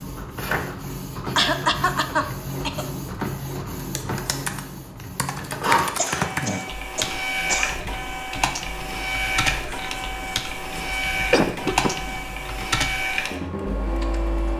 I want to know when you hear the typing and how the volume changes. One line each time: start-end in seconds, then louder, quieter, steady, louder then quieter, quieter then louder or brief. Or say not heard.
3.8-14.5 steady.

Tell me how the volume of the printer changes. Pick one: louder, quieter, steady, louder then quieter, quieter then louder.
steady.